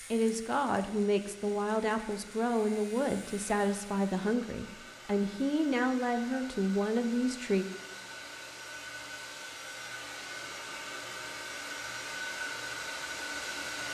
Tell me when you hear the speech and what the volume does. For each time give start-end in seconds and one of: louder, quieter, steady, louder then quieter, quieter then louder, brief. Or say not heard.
0.1-7.7 steady.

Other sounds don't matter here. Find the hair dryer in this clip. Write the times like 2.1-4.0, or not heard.
0.0-13.8.